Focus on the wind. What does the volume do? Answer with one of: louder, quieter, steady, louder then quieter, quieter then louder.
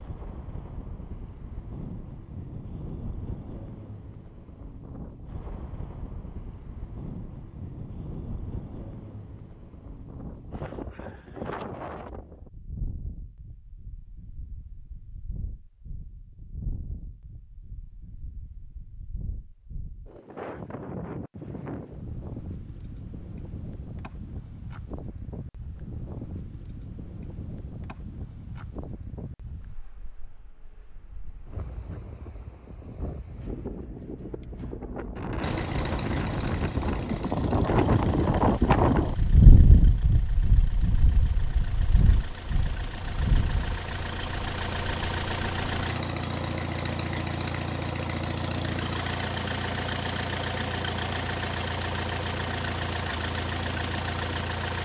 louder.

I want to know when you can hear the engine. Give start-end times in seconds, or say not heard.
35.4-54.8.